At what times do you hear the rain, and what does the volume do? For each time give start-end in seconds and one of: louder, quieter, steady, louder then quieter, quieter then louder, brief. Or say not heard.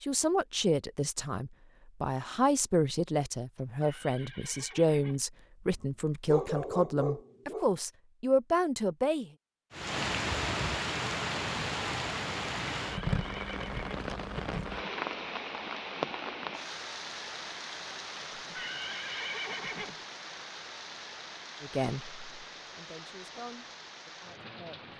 9.7-24.9 quieter.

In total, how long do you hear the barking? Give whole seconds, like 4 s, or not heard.
2 s.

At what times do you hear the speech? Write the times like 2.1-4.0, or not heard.
0.0-9.3, 21.6-24.9.